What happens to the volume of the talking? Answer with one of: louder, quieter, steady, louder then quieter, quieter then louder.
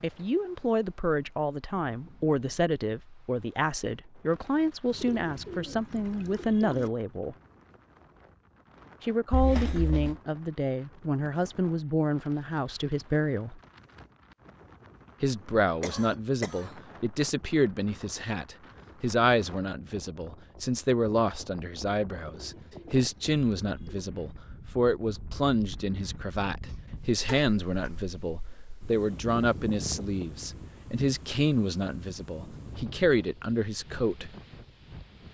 steady.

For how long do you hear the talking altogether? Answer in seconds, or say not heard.
31 s.